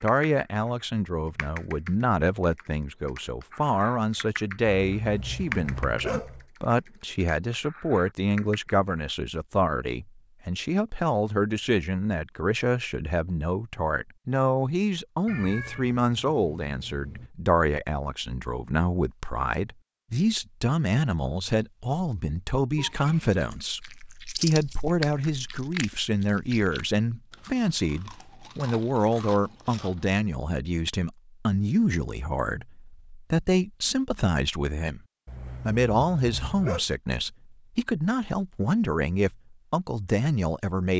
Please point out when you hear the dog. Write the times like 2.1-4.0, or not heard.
4.8-6.5, 35.2-36.8.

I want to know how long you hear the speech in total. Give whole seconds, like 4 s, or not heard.
40 s.